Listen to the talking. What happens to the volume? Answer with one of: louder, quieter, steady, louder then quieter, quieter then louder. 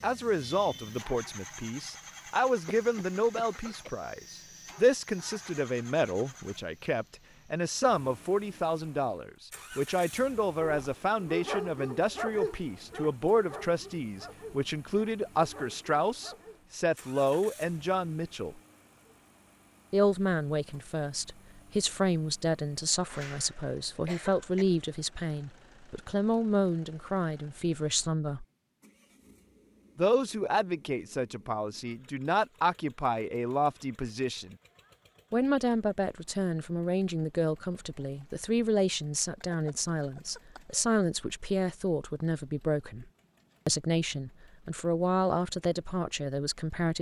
steady.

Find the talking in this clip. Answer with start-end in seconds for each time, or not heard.
0.0-18.6, 19.9-28.4, 29.9-34.5, 35.3-43.0, 43.6-46.9.